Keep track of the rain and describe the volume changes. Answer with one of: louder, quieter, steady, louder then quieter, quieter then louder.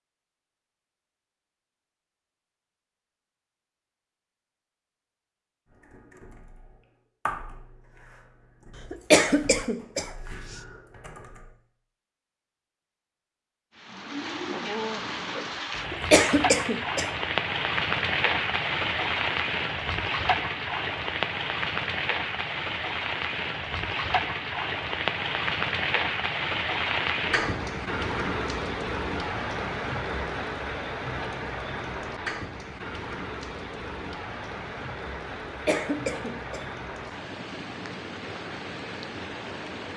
quieter.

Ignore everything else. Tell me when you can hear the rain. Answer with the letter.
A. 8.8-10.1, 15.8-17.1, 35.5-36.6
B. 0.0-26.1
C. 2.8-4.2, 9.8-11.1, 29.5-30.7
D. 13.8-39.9
D.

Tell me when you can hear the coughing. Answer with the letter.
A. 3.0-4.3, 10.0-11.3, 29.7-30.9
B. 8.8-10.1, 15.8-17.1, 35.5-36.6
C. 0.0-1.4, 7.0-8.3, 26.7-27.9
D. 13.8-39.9
B.